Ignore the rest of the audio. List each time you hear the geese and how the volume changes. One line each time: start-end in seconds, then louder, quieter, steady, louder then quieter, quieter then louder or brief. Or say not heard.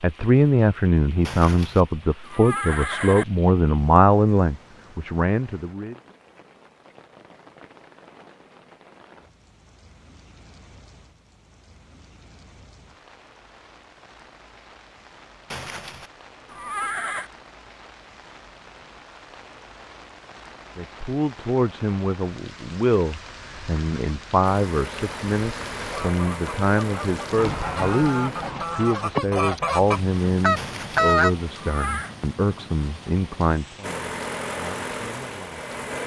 25.9-31.3 louder.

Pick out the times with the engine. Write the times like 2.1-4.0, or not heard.
24.4-28.5, 33.8-36.0.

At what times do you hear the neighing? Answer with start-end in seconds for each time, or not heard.
1.2-3.2, 15.5-17.3, 30.6-32.1.